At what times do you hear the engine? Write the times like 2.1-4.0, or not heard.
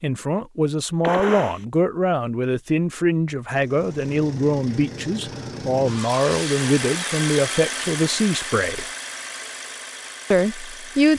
3.5-11.1.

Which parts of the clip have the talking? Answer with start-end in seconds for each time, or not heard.
0.0-8.8, 10.3-11.1.